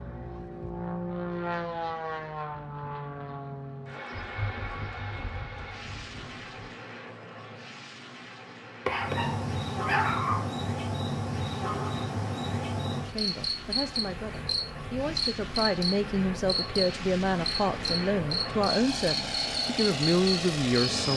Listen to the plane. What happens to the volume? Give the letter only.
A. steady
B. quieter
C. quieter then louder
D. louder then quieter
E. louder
C.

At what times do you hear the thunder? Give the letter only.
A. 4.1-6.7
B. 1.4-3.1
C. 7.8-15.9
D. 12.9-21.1
A.